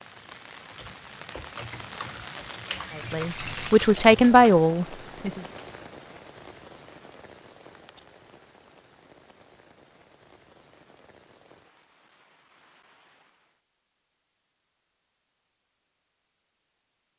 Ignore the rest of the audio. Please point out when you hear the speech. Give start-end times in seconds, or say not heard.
3.0-5.5.